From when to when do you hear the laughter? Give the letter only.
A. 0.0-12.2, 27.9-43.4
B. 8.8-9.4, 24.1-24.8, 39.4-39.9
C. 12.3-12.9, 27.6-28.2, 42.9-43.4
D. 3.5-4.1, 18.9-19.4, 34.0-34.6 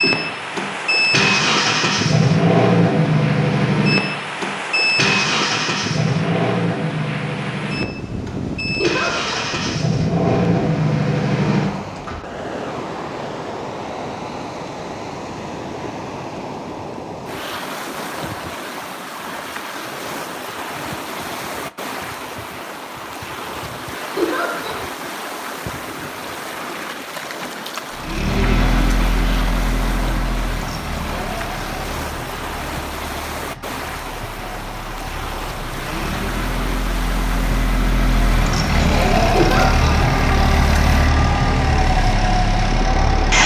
B.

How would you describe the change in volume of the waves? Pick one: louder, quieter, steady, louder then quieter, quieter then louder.
steady.